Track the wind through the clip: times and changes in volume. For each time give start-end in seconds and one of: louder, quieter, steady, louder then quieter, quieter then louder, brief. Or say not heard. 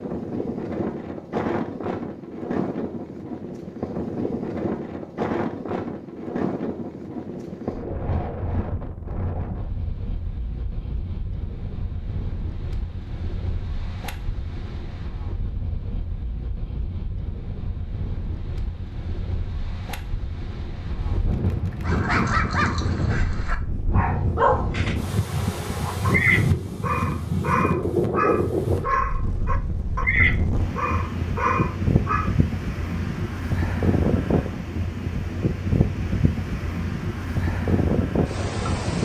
0.0-39.0 quieter then louder.